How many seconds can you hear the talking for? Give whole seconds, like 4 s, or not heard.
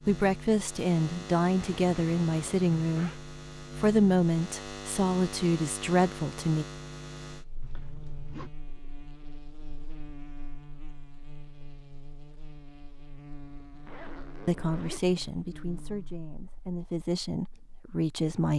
11 s.